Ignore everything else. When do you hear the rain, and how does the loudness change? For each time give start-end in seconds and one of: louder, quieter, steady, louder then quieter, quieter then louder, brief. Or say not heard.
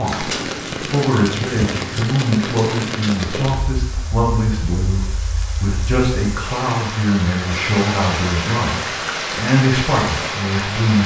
0.0-11.0 quieter then louder.